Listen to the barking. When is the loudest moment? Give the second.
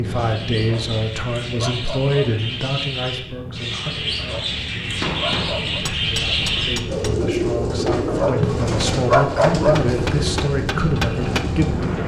9 s.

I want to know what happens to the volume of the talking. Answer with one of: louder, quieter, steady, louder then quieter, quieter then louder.
quieter then louder.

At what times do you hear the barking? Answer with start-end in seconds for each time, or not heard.
0.6-2.4, 4.2-5.8, 8.1-9.9.